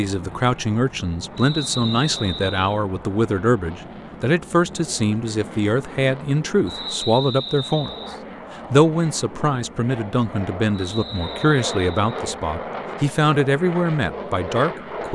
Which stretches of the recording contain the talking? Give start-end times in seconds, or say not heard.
0.0-7.9, 8.7-15.1.